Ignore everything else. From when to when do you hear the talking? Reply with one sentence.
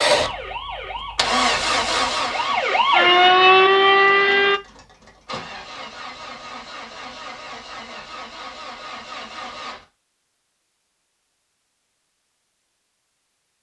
You can't hear the talking here.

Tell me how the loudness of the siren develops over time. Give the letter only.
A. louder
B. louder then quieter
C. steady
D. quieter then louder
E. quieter
A.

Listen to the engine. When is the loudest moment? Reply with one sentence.
The loudest moment of the engine is at 2 seconds.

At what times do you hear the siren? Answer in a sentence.
You can hear the siren from 0.1 to 4.6 s.